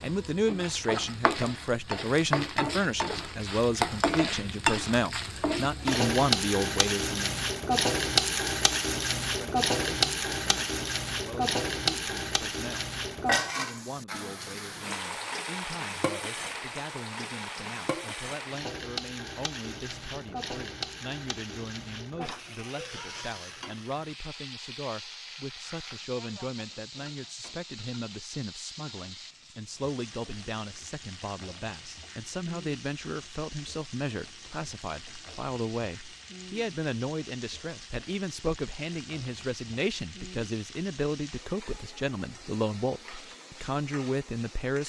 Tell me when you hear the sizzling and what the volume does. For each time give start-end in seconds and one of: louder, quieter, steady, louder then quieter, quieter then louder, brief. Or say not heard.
0.0-44.8 quieter.